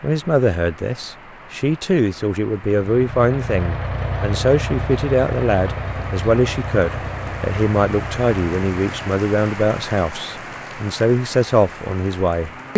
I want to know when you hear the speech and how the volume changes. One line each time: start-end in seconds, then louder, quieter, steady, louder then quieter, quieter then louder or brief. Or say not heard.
0.0-12.7 steady.